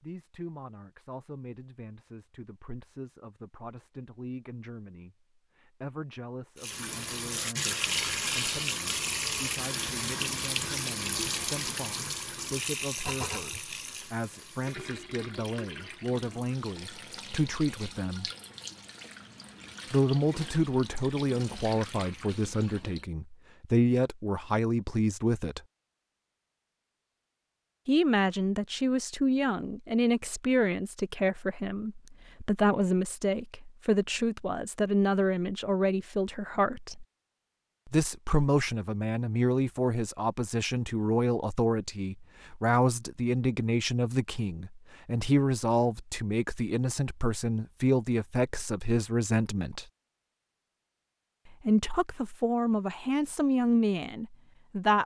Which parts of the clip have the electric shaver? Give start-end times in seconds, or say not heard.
not heard.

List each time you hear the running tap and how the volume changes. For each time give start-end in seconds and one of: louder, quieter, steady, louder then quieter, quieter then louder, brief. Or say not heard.
6.5-23.1 quieter.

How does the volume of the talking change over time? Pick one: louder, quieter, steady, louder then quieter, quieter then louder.
louder.